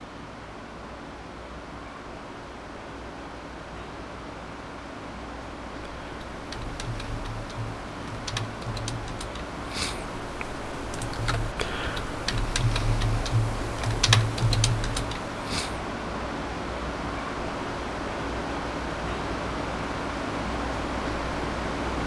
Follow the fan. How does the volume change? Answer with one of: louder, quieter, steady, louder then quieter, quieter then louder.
louder.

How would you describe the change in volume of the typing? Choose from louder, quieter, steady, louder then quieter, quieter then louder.
louder.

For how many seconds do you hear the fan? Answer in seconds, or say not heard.
22 s.